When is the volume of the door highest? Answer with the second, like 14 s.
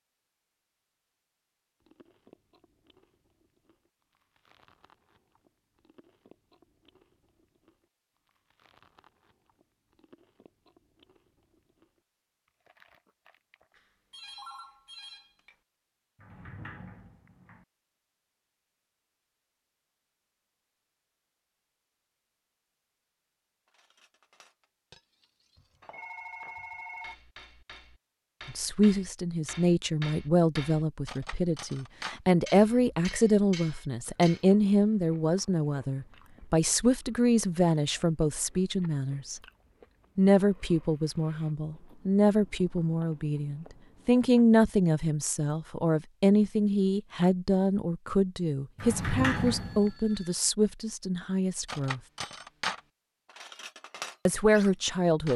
49 s.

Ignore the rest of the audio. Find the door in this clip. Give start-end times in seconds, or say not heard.
16.1-17.6, 48.8-49.9.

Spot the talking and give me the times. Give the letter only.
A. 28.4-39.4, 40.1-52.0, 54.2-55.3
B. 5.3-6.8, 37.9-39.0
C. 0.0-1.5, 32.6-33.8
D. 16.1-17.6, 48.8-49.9
A.